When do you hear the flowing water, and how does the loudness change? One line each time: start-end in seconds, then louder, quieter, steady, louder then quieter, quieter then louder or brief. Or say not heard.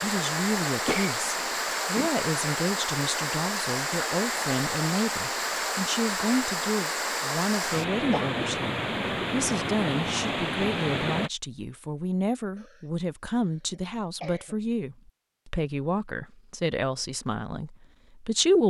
0.0-11.3 steady.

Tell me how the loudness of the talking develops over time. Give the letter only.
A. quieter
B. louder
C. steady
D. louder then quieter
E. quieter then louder
C.